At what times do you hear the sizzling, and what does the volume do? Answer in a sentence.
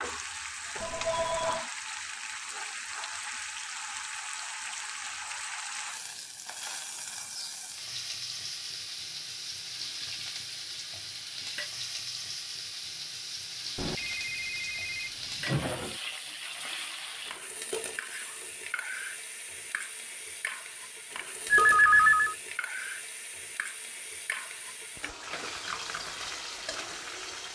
The sizzling can be heard from 0.0 to 27.5 s, at a steady volume.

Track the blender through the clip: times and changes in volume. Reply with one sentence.
You can't hear the blender here.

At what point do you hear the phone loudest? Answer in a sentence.
The loudest moment of the phone is at 22 seconds.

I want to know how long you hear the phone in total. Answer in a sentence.
The phone can be heard for 4 seconds in total.